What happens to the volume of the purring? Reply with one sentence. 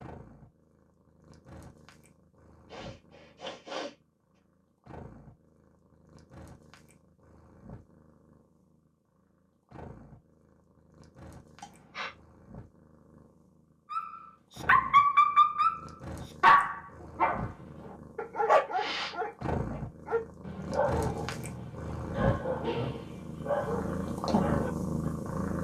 The volume of the purring goes up.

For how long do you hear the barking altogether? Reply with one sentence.
You can hear the barking for 11 seconds altogether.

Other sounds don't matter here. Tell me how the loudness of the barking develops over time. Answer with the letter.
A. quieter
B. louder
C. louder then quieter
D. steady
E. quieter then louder
A.